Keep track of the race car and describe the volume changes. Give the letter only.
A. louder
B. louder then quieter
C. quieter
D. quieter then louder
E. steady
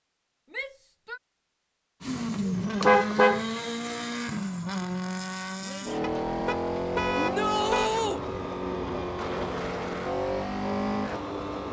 E.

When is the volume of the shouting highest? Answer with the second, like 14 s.
8 s.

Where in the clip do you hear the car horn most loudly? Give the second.
3 s.